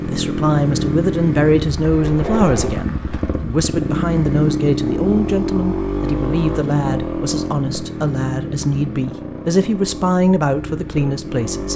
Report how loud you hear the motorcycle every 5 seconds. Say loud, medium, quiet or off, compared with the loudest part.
loud, loud, medium.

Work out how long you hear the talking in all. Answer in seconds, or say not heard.
12 s.